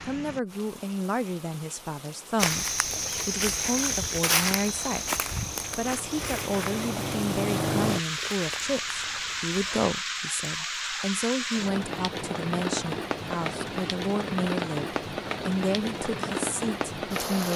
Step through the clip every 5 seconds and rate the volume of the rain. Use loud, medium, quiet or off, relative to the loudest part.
quiet, loud, loud, loud.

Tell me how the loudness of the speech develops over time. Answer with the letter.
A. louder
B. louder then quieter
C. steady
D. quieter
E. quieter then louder
C.